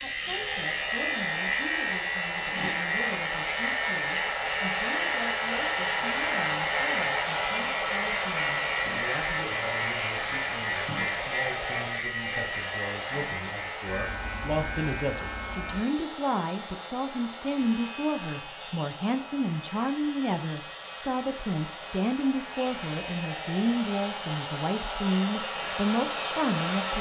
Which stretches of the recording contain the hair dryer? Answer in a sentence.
You can hear the hair dryer from 0.0 to 26.9 s.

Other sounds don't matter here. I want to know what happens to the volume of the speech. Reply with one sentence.
The volume of the speech goes up.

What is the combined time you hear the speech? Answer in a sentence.
You can hear the speech for 27 seconds altogether.